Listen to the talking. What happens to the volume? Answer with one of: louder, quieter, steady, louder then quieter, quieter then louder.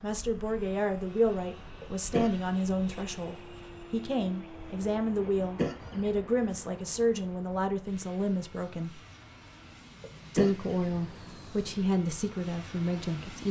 steady.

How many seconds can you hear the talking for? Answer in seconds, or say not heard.
12 s.